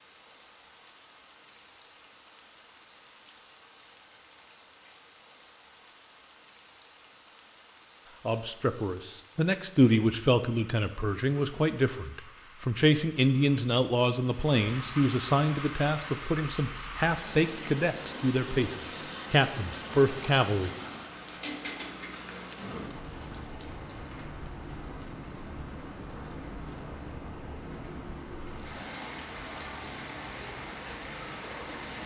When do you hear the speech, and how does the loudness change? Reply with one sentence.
The speech can be heard from 8.2 to 20.7 s, at a steady volume.